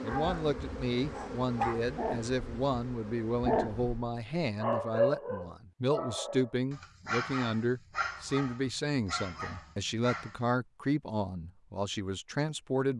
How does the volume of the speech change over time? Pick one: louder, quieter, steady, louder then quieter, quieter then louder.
steady.